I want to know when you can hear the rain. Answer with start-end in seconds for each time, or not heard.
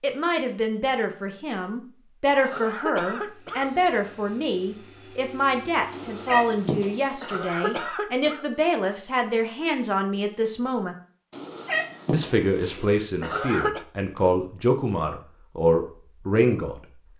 not heard.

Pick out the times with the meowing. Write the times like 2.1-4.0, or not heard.
5.9-7.0, 11.3-12.8.